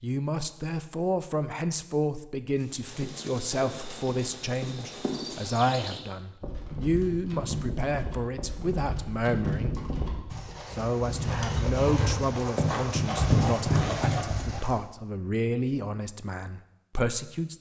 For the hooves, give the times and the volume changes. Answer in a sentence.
You can hear the hooves from 2.5 to 14.7 s, getting louder.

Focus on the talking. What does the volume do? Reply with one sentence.
The loudness of the talking stays about the same.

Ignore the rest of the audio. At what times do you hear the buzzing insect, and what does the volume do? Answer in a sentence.
You can't hear the buzzing insect here.